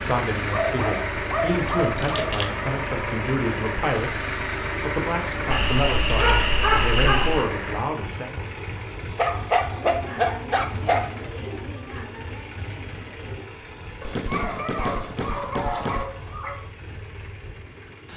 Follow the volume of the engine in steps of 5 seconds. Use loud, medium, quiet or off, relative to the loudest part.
loud, loud, medium, quiet.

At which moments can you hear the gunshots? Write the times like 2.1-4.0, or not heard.
14.0-16.1.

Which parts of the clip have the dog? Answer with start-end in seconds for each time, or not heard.
0.5-2.5, 5.5-7.5, 9.2-11.1, 14.0-16.6.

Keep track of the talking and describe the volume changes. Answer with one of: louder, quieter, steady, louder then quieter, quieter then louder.
steady.